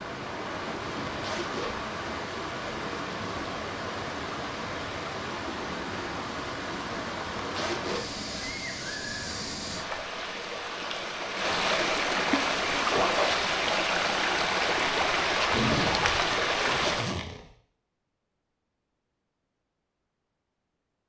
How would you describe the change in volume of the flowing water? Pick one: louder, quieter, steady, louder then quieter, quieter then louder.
louder.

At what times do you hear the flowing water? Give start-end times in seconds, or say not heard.
0.0-17.1.